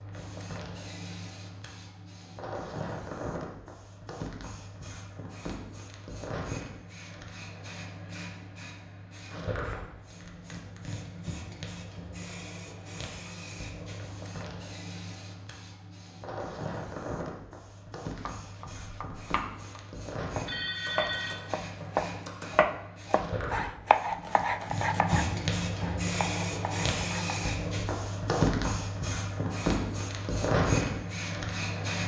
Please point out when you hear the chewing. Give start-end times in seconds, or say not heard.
not heard.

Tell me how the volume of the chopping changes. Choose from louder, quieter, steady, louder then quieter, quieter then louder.
louder then quieter.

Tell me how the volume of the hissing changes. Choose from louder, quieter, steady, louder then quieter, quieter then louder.
louder.